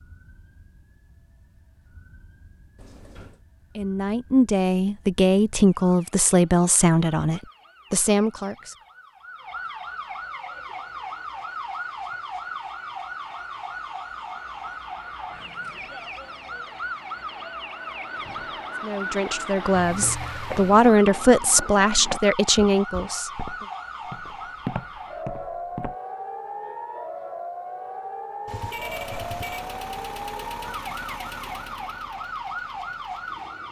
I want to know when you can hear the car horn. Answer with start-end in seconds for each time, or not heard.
28.4-29.6.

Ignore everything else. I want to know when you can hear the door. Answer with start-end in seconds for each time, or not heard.
2.8-3.5.